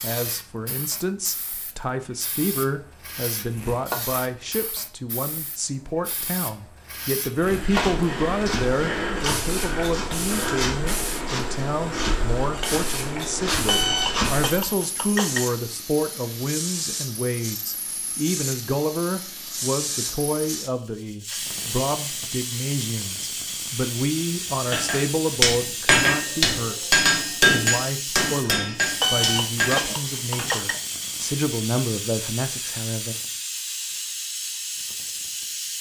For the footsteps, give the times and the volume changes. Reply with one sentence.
You can hear the footsteps from 7.3 to 14.5 s, at a steady volume.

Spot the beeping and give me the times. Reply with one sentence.
You can hear the beeping from 13.7 to 15.4 s and from 29.0 to 30.8 s.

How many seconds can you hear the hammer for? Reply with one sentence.
You can hear the hammer for 6 seconds altogether.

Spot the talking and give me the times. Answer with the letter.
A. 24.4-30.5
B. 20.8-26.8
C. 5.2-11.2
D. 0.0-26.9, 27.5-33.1
D.